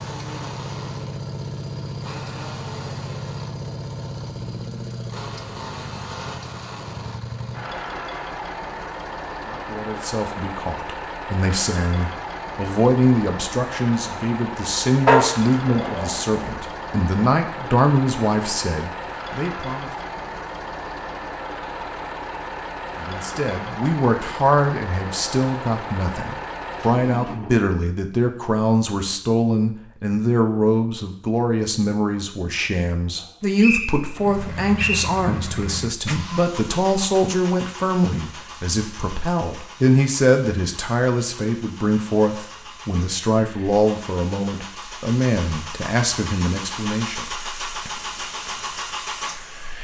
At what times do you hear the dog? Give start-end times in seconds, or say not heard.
15.1-16.5.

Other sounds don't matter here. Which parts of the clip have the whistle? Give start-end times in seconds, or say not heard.
33.6-35.1.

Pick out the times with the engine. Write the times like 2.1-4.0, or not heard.
0.0-27.7, 34.1-49.7.